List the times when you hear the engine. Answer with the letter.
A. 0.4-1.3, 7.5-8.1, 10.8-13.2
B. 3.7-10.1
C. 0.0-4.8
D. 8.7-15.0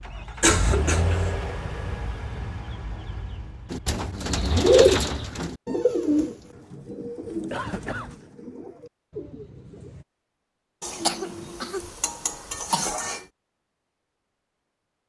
C.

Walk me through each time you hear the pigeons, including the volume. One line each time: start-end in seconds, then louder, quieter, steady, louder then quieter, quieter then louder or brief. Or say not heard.
3.7-10.1 quieter.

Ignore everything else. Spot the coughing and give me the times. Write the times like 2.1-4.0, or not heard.
0.4-1.3, 7.5-8.1, 10.8-13.2.